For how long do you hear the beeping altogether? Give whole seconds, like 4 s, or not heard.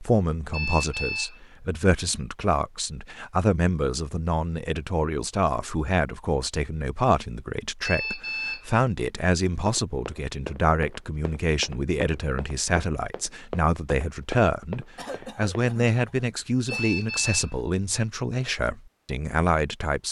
3 s.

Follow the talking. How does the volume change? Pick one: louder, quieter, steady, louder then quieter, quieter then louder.
steady.